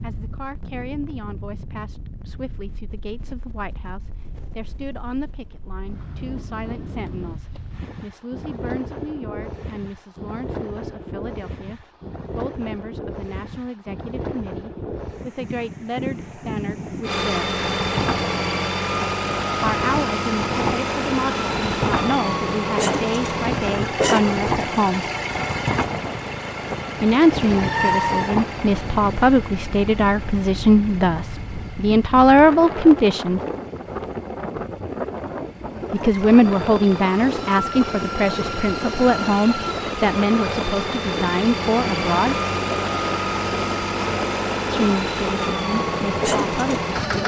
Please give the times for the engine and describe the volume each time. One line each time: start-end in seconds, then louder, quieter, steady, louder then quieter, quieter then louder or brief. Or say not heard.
17.0-47.2 quieter then louder.